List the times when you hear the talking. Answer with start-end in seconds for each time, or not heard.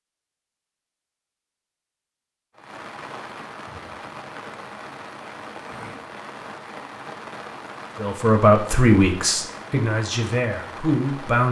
8.0-11.4.